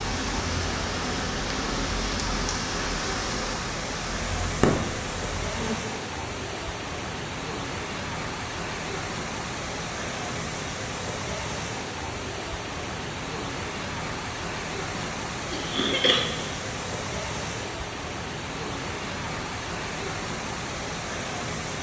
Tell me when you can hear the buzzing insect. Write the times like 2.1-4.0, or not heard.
0.0-5.8.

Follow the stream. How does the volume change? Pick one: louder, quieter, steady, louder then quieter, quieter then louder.
steady.